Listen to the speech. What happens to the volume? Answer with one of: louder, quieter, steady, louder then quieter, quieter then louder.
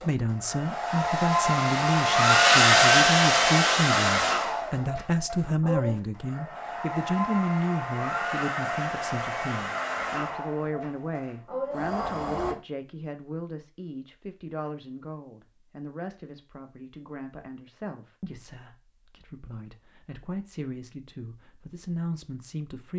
quieter.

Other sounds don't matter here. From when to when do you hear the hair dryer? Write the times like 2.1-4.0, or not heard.
0.0-12.6.